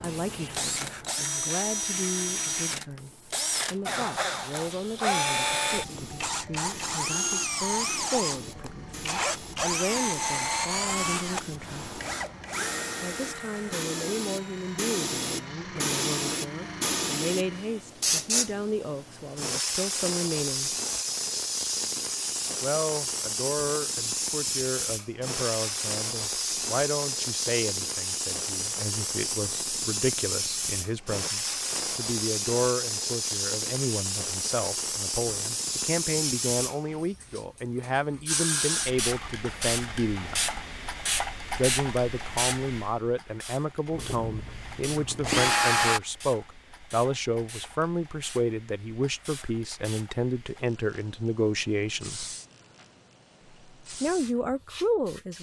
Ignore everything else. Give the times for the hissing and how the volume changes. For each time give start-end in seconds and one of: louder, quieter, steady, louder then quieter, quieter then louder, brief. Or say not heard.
0.0-55.3 louder then quieter.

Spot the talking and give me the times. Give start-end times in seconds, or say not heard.
0.0-11.9, 13.0-20.8, 22.6-40.4, 41.5-52.3, 54.0-55.3.